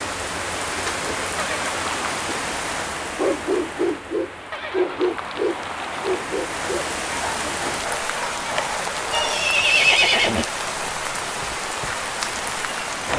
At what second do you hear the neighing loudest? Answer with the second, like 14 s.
10 s.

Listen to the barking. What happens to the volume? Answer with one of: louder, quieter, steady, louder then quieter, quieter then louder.
quieter.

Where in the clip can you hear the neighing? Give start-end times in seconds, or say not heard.
1.4-2.1, 4.5-6.2, 9.1-10.4.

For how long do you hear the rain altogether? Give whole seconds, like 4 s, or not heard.
13 s.